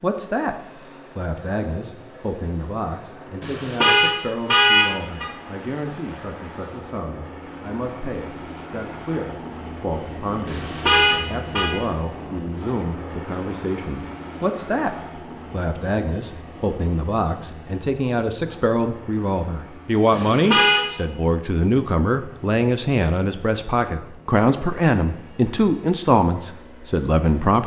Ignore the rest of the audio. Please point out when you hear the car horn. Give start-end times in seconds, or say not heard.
3.4-5.3, 10.4-11.7, 20.1-20.8.